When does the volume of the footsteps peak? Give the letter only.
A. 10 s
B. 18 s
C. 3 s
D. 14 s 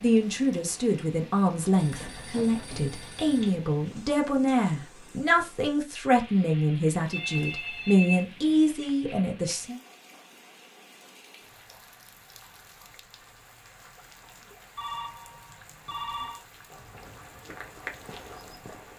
B.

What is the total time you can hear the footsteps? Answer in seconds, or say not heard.
3 s.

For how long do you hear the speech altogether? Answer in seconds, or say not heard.
10 s.